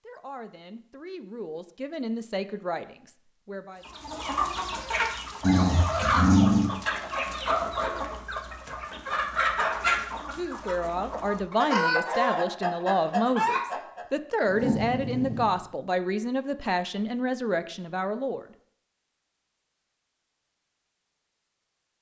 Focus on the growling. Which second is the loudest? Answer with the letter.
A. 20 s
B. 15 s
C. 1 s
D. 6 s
D.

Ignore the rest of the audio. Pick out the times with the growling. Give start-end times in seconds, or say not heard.
5.4-6.7, 14.4-15.6.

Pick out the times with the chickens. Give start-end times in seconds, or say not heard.
3.8-14.1.